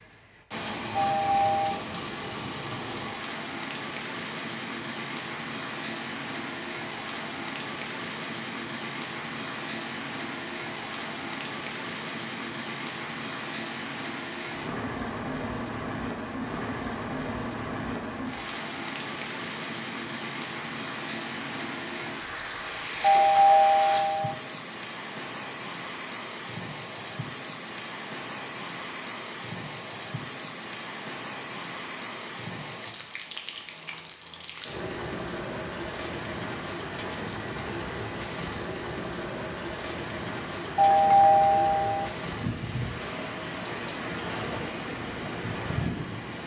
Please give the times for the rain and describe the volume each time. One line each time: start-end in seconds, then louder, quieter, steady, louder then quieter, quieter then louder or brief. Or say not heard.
0.0-46.4 steady.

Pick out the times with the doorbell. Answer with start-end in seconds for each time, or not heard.
0.9-1.8, 23.0-24.4, 40.8-42.0.